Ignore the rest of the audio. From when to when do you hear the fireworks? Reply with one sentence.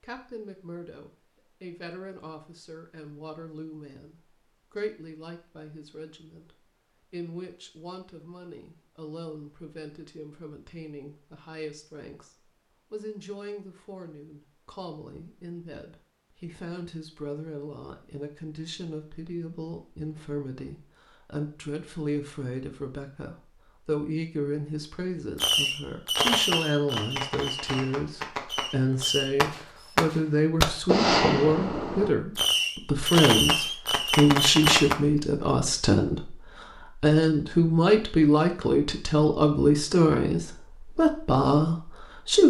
The fireworks can be heard from 25.4 to 35.0 s.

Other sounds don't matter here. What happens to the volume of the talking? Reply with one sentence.
The loudness of the talking goes up.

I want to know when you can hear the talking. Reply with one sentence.
You can hear the talking from 0.0 to 42.4 s.